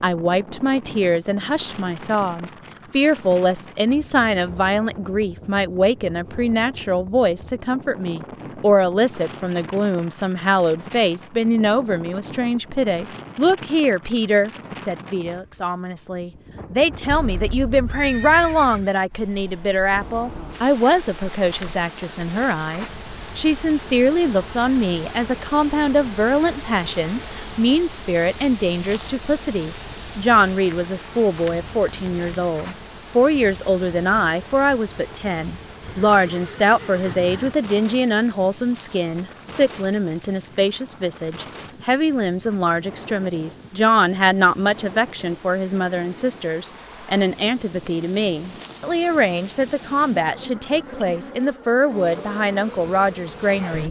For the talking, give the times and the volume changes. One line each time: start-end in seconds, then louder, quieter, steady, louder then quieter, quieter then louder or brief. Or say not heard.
0.0-53.8 steady.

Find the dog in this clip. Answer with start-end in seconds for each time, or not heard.
not heard.